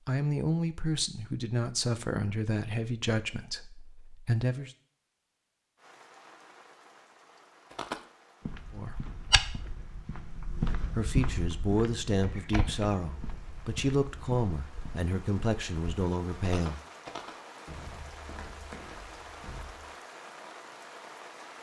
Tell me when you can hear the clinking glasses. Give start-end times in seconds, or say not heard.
not heard.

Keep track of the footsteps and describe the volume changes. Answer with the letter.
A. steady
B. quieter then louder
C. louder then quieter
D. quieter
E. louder
D.